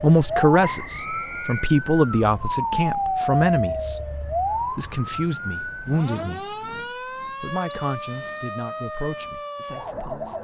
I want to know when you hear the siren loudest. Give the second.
3 s.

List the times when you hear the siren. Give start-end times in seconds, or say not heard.
0.0-10.3.